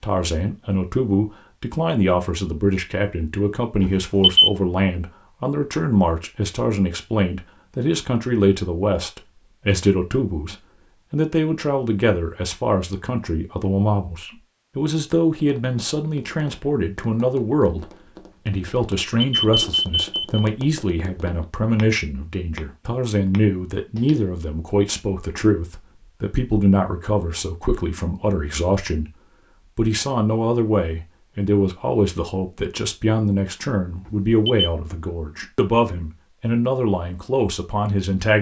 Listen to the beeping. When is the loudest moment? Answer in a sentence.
The loudest moment of the beeping is at 4 seconds.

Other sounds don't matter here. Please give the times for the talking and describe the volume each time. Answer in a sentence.
The talking can be heard from 0.0 to 38.3 s, at a steady volume.